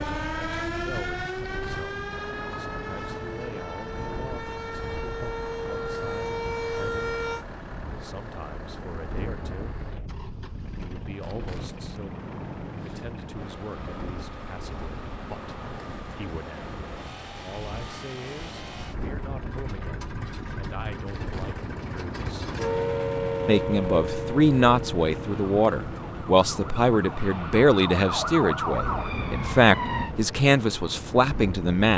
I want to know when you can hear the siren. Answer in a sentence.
You can hear the siren from 0.0 to 7.5 s and from 22.6 to 30.1 s.